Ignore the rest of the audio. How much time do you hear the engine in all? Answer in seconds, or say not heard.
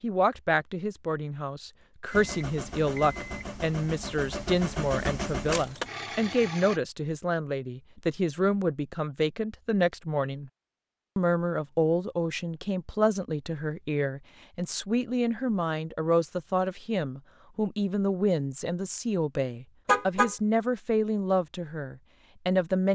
5 s.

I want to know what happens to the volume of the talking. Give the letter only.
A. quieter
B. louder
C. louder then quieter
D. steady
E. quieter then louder
D.